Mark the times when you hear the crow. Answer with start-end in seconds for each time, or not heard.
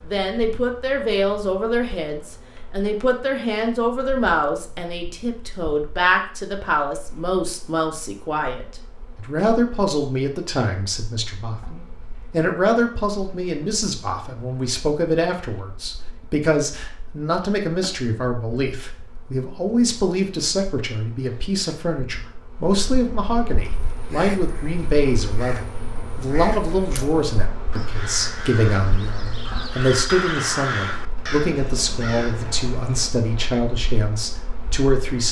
23.6-33.1.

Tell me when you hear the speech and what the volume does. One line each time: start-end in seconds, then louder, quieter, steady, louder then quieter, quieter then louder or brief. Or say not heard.
0.1-35.2 steady.